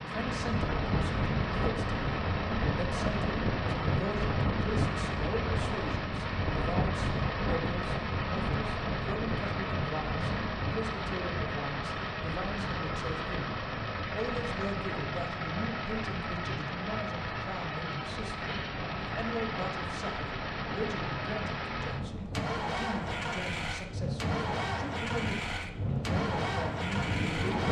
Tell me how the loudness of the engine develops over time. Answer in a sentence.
The volume of the engine stays about the same.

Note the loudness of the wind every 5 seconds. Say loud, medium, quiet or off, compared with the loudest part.
loud, loud, medium, medium, medium, loud.